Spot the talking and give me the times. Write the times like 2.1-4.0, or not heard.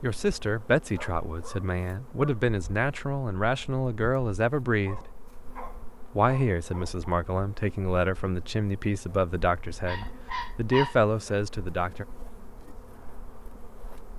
0.0-5.0, 6.2-12.1.